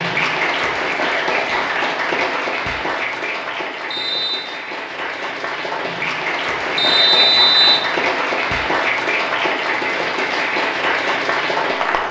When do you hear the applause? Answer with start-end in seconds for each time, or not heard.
0.0-12.0.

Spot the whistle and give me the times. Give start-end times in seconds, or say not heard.
3.9-4.5, 6.8-7.9.